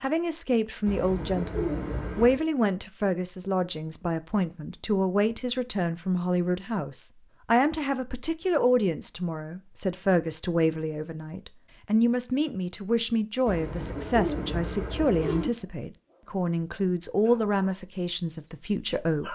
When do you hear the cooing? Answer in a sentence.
You can hear the cooing from 0.8 to 2.4 s and from 13.4 to 15.4 s.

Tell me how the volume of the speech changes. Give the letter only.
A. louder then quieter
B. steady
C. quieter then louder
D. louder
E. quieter
B.